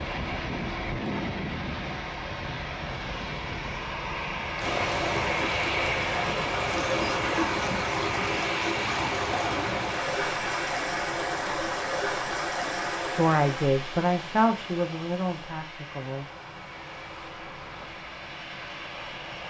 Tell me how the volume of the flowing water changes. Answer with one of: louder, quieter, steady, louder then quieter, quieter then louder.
quieter.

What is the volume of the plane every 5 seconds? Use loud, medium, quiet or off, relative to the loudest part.
loud, loud, medium, medium.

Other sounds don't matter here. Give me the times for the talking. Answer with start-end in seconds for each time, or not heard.
13.1-16.2.